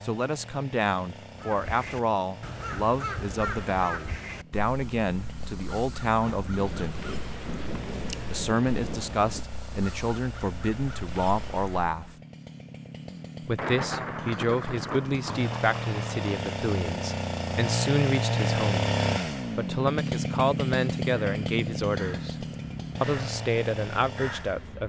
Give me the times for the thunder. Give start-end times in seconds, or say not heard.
6.3-9.4, 13.6-16.2.